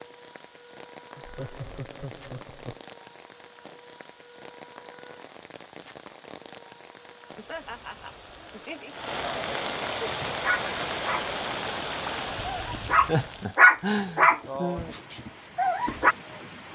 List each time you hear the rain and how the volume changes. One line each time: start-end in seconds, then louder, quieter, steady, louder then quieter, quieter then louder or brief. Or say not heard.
0.0-16.7 louder then quieter.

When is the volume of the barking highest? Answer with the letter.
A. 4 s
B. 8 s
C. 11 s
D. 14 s
D.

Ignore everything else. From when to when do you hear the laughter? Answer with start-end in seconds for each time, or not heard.
1.1-2.8, 7.3-8.9, 13.1-14.9.